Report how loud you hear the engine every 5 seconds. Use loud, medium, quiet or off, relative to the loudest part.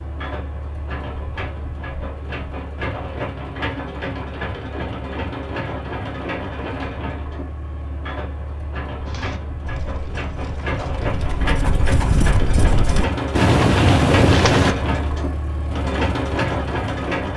medium, medium, loud, loud.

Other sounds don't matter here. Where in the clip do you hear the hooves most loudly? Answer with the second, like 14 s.
14 s.